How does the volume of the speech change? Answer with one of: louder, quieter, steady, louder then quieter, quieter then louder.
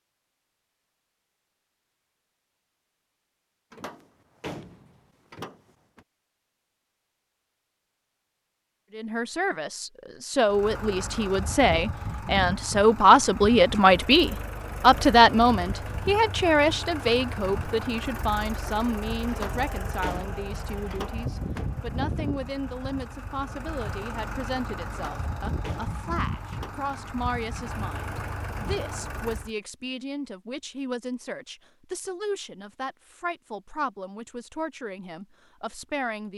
quieter.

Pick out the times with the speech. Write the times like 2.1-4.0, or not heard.
8.9-36.3.